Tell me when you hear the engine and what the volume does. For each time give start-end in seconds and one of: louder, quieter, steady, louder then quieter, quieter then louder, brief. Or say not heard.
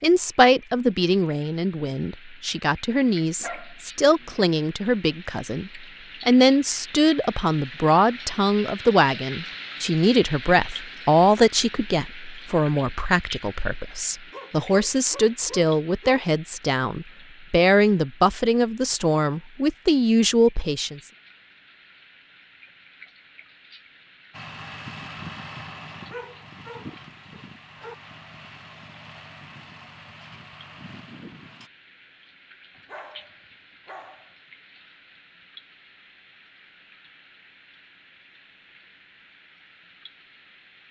24.3-31.7 quieter.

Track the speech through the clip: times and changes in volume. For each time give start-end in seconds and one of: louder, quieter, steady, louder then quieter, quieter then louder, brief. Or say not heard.
0.0-21.0 steady.